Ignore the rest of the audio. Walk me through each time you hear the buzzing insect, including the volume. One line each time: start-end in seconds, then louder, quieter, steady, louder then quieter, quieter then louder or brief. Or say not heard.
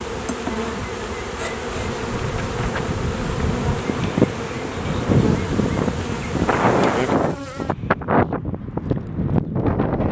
0.0-7.8 steady.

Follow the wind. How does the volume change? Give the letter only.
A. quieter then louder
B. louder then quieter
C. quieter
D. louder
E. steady
D.